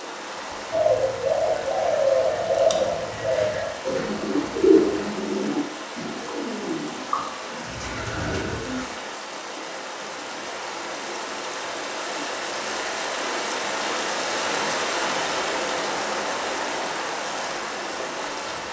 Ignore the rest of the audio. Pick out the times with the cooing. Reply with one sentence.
The cooing can be heard from 0.7 to 8.9 s.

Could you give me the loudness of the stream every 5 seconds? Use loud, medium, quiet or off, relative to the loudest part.
medium, medium, loud, loud.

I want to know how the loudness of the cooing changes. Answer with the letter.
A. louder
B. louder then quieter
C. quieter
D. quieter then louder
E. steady
C.